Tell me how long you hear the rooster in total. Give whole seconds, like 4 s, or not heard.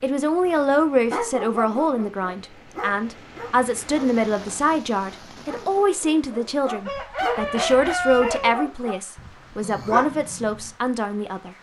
2 s.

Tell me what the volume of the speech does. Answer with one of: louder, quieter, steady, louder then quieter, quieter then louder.
steady.